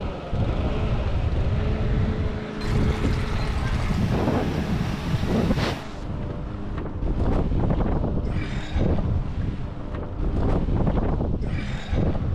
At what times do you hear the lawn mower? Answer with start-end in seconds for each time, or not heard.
0.0-12.3.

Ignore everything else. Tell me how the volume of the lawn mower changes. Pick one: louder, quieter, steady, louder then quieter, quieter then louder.
quieter.